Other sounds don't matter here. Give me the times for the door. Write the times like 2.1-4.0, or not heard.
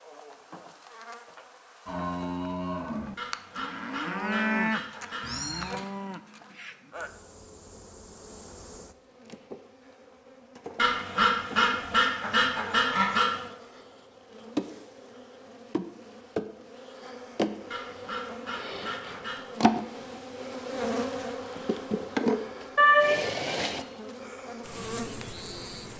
not heard.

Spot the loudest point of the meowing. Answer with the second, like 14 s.
23 s.